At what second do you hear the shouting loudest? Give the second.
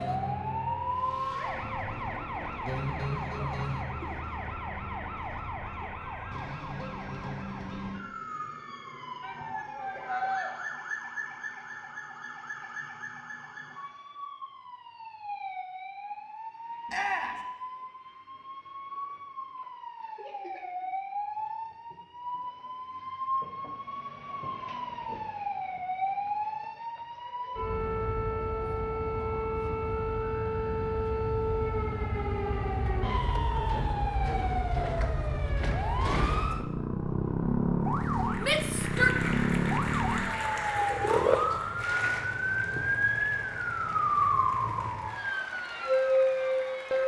39 s.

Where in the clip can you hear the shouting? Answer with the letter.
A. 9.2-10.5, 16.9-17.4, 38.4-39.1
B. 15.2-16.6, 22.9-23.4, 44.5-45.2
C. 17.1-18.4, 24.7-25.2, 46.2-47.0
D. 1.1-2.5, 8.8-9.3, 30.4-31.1
A.